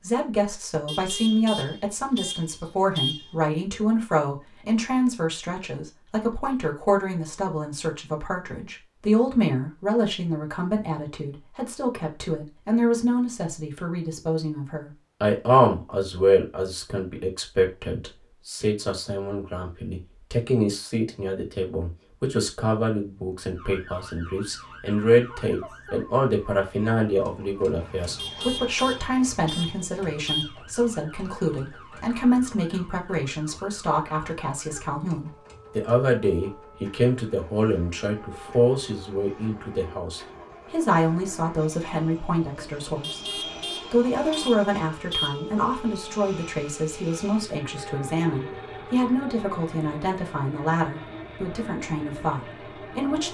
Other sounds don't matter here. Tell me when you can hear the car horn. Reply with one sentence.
The car horn can be heard from 0.8 to 3.4 s, from 28.1 to 30.6 s and from 43.0 to 45.5 s.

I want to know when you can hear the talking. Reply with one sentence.
You can hear the talking from 0.0 to 53.2 s.